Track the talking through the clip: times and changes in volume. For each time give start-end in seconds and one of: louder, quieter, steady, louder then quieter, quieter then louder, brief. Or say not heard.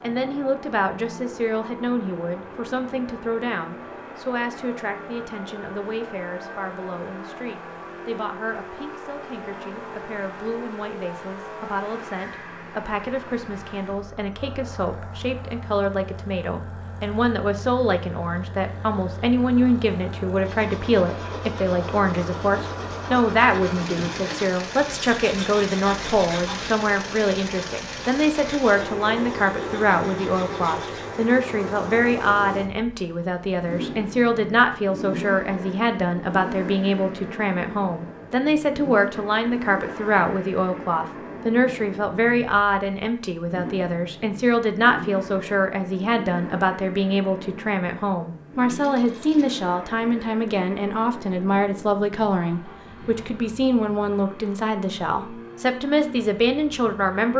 0.0-57.3 louder.